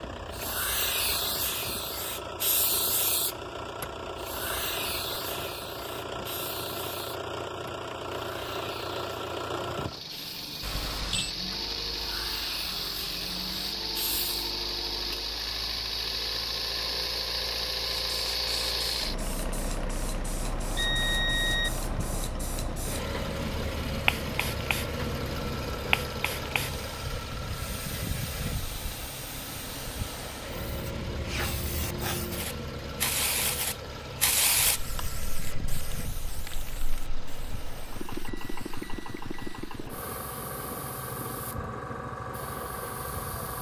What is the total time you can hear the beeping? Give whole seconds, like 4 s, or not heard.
4 s.